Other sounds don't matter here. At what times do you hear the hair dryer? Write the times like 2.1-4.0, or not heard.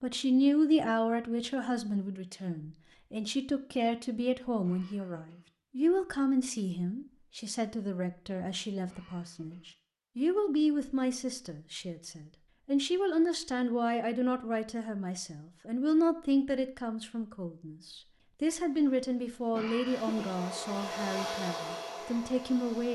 18.6-22.8.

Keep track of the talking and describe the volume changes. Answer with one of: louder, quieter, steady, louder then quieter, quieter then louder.
steady.